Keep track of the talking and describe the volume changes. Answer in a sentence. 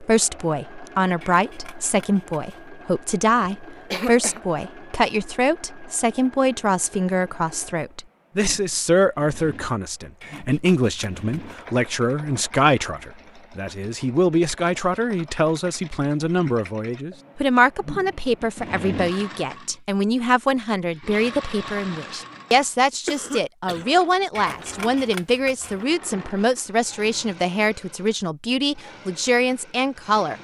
The loudness of the talking stays about the same.